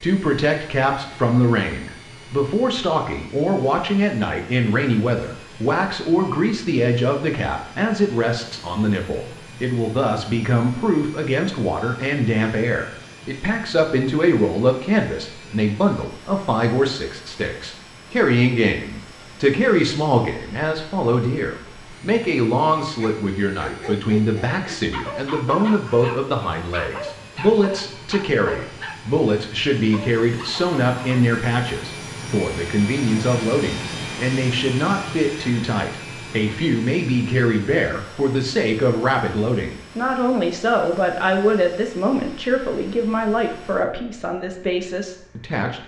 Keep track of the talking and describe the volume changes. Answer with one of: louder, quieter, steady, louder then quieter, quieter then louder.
steady.